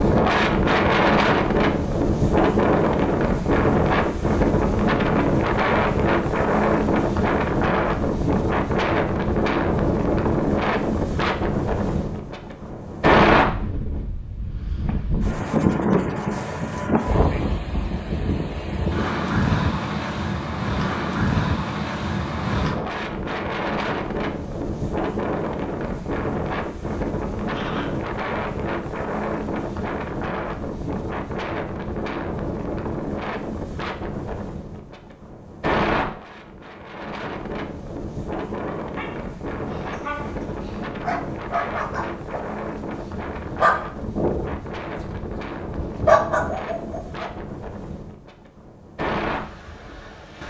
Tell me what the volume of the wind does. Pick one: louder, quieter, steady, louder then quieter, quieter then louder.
quieter.